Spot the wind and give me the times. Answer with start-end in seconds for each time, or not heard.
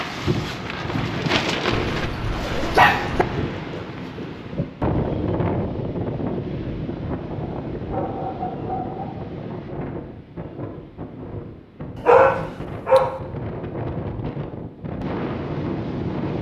0.0-16.3.